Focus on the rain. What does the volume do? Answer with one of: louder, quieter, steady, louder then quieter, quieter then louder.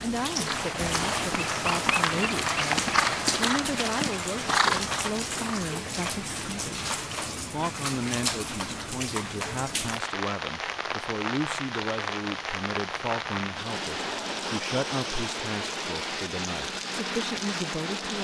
steady.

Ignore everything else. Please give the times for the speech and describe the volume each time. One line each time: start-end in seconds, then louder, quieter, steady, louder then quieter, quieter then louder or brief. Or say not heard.
0.0-18.2 steady.